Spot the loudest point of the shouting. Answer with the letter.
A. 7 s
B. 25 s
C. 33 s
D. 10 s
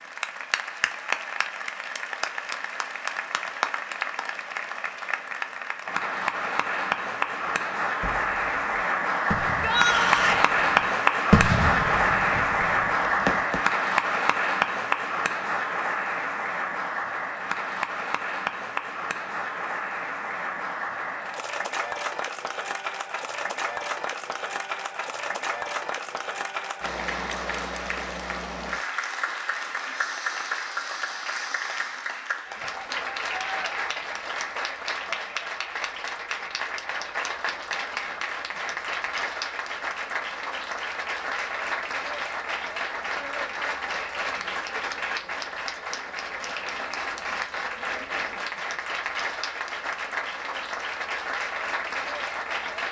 D.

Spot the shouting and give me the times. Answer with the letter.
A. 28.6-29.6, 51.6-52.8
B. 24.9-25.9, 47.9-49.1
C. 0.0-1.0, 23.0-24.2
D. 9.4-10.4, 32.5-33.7
D.